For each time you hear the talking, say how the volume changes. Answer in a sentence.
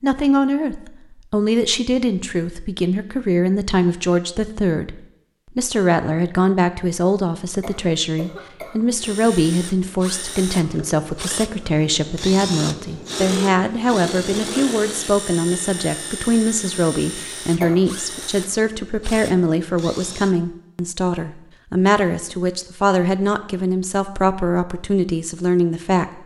The talking can be heard from 0.0 to 26.2 s, at a steady volume.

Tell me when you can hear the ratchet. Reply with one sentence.
The ratchet can't be heard in this clip.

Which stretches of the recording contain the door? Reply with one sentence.
The door can't be heard in this clip.